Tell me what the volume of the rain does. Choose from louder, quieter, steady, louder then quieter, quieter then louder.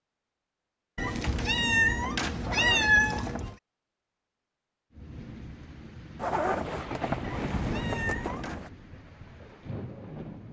louder then quieter.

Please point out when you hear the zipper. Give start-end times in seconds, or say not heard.
2.4-3.5, 6.2-8.7.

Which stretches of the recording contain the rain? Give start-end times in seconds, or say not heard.
4.9-10.4.